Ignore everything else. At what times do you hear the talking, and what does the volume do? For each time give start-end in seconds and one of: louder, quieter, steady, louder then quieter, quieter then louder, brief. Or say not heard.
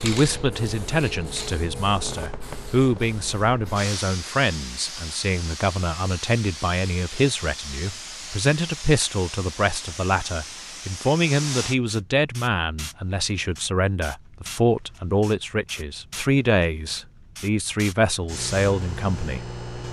0.0-19.6 steady.